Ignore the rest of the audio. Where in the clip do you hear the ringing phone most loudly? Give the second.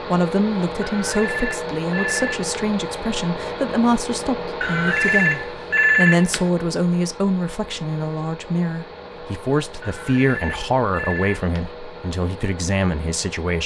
6 s.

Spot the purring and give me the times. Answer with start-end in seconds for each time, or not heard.
not heard.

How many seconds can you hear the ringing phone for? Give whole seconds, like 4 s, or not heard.
5 s.